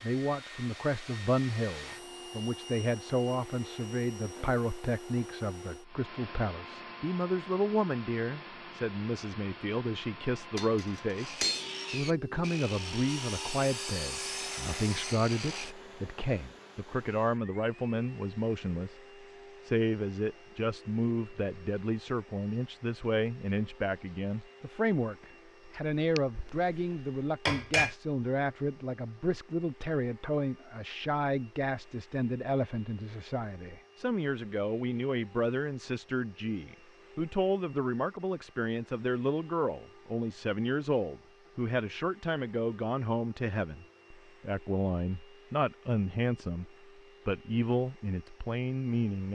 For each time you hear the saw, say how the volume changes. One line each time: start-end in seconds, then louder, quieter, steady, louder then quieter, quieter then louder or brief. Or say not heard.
11.2-15.8 steady.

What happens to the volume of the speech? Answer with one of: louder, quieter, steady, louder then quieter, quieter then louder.
steady.